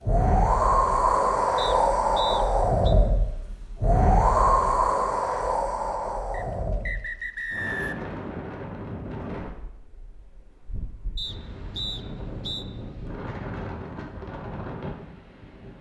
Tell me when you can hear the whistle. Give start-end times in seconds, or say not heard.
1.6-3.0, 6.3-8.1, 11.2-12.7.